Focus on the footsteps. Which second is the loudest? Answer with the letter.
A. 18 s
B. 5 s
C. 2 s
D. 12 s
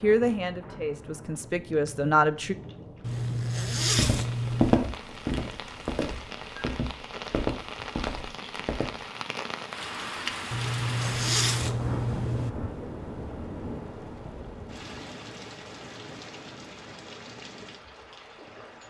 B.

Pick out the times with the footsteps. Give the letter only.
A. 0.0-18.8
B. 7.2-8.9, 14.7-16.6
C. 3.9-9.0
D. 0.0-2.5
C.